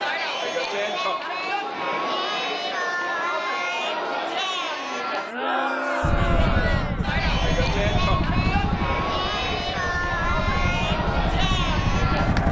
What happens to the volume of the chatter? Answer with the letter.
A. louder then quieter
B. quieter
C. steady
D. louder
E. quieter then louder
C.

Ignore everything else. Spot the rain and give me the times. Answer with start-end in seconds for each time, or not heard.
not heard.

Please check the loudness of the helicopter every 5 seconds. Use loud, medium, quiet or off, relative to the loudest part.
off, loud, loud.